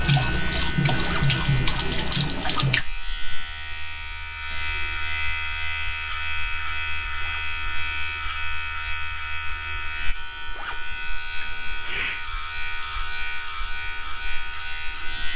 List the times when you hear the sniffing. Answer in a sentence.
You can hear the sniffing from 11.4 to 12.2 s.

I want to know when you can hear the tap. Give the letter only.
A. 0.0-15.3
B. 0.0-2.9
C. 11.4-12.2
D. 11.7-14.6
B.